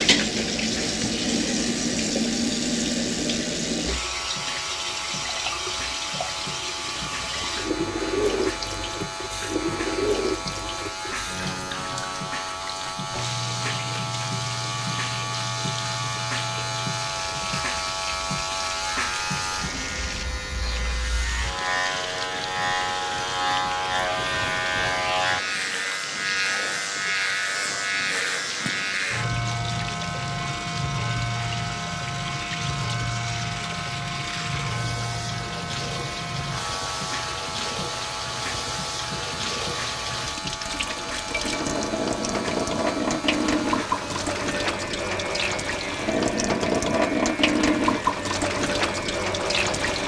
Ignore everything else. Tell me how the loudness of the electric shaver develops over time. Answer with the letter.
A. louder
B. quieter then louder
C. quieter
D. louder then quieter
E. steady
D.